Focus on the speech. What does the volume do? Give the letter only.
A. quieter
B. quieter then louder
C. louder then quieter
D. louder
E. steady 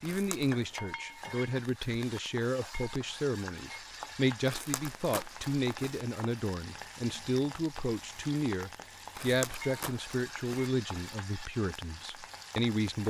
E.